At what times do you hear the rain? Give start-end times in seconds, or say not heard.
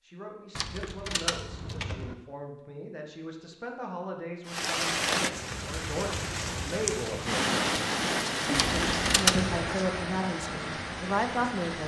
4.5-11.8.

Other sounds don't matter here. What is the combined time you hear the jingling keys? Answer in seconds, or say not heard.
3 s.